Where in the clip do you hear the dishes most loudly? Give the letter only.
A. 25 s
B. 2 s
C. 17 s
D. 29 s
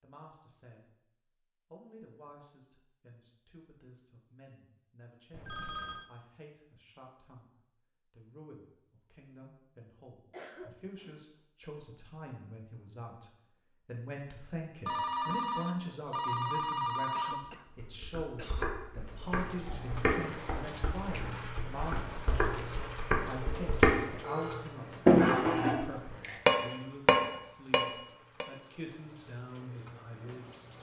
A.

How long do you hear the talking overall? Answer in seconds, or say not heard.
30 s.